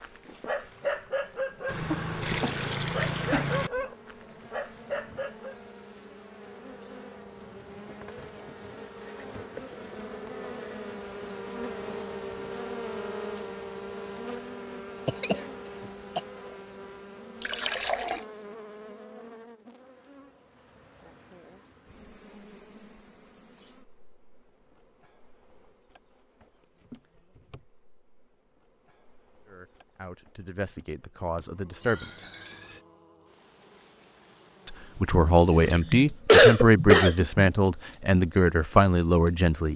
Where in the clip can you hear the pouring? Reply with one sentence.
You can hear the pouring from 1.6 to 3.7 s, from 17.4 to 18.2 s and from 31.8 to 32.9 s.